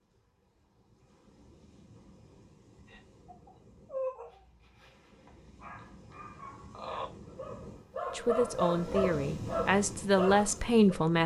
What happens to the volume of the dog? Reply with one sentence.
The loudness of the dog goes down, then up.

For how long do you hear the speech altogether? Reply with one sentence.
The speech can be heard for 3 seconds in total.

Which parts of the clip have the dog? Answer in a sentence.
You can hear the dog from 2.9 to 10.9 s.